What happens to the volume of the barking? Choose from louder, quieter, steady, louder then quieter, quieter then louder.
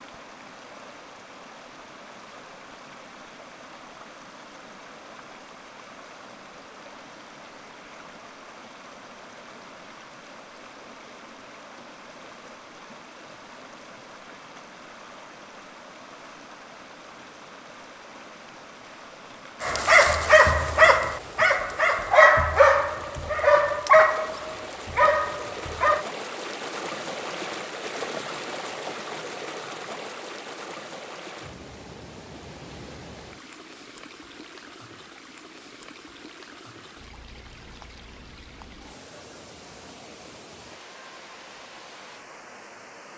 quieter.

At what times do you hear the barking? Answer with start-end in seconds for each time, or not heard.
19.6-26.1.